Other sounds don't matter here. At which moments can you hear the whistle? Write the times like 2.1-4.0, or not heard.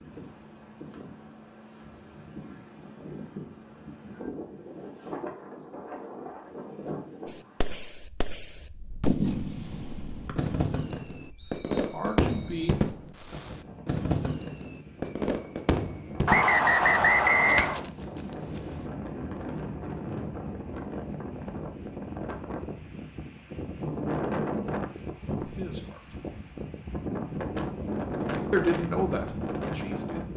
10.2-12.7, 16.2-17.9.